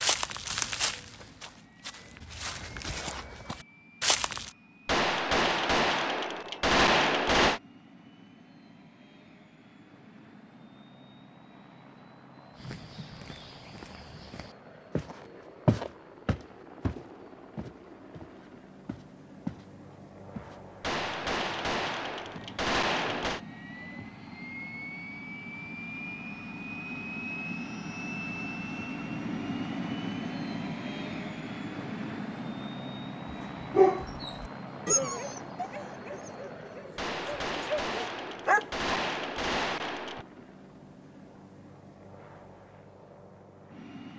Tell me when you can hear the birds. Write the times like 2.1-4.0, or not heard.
not heard.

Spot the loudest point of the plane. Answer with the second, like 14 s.
30 s.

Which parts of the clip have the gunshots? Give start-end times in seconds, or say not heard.
4.8-7.6, 20.8-23.4, 37.0-40.2.